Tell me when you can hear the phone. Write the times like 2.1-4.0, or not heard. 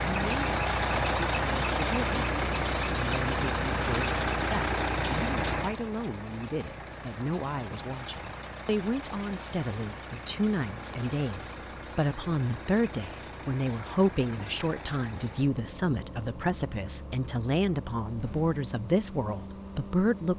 not heard.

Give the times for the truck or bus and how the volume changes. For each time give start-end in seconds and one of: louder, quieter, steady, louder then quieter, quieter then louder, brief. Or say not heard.
0.0-20.3 quieter.